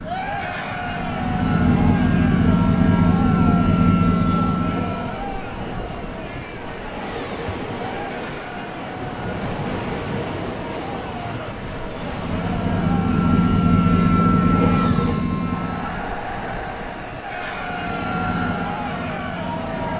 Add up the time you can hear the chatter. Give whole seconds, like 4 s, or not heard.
20 s.